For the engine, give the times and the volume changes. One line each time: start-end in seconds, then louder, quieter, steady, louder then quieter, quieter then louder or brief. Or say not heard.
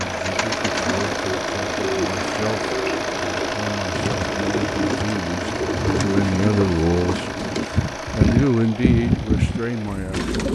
0.0-10.4 quieter.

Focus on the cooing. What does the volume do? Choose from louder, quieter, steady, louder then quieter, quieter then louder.
louder.